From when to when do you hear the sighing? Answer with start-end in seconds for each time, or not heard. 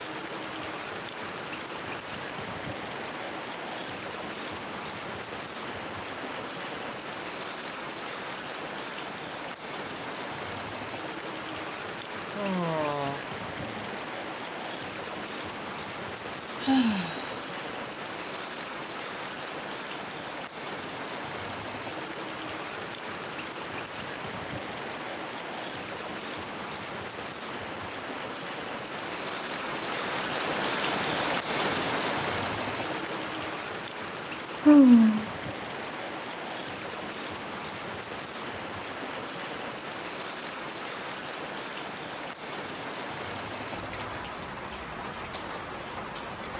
12.3-13.9, 16.6-17.2, 34.6-35.2.